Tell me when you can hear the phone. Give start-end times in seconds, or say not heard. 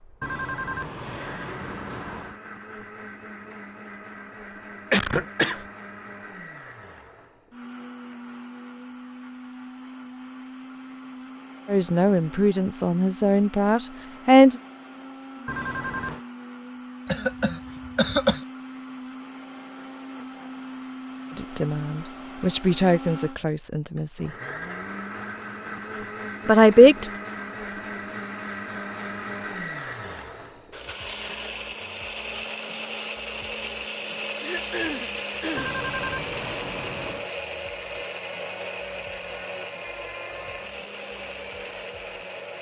0.2-2.4, 15.4-16.2, 35.5-37.3.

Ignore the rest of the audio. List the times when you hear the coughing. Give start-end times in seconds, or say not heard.
4.9-5.7, 17.1-18.4, 34.4-35.8.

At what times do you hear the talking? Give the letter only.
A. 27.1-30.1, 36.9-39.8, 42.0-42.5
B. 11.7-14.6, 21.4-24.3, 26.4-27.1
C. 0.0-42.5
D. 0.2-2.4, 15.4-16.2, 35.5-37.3
B.